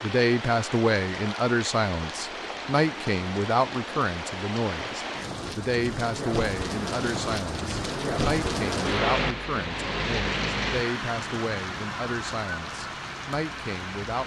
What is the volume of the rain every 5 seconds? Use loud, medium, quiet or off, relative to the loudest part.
medium, loud, loud.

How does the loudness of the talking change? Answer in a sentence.
The volume of the talking goes down.